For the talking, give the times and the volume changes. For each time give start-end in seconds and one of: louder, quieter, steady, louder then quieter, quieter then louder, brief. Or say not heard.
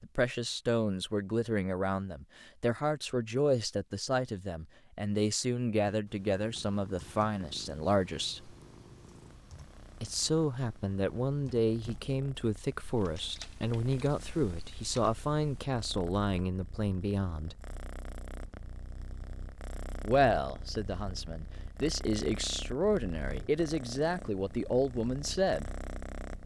0.0-8.6 steady
10.0-17.6 steady
20.0-25.7 louder.